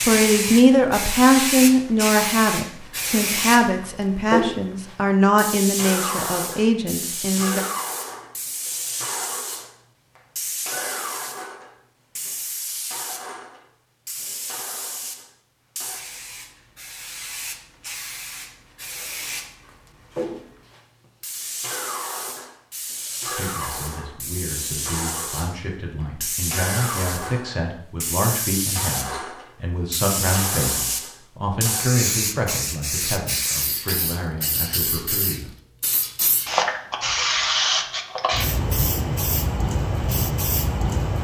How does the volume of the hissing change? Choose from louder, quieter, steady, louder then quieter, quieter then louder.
quieter then louder.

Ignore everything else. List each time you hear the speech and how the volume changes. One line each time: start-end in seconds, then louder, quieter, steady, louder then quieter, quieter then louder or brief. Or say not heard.
0.0-7.6 quieter
23.2-35.5 louder then quieter.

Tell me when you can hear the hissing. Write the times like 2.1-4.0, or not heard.
0.0-41.1.